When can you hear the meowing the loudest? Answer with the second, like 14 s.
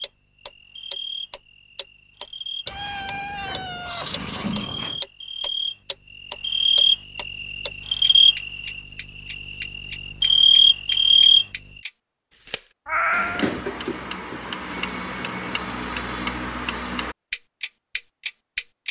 13 s.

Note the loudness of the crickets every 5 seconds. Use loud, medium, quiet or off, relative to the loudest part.
quiet, medium, loud, off.